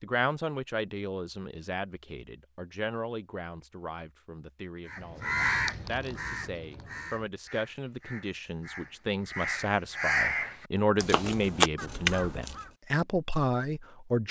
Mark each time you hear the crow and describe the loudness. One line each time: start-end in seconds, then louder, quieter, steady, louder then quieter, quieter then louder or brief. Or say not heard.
4.8-12.7 quieter then louder.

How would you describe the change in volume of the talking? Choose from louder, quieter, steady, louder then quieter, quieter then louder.
quieter then louder.